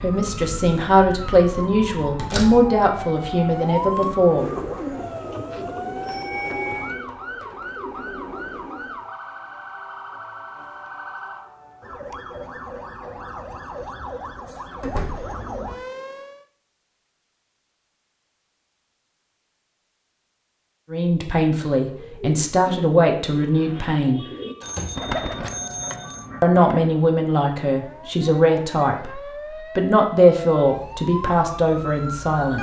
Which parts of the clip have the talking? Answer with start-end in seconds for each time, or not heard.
0.0-4.5, 20.9-24.2, 26.4-32.5.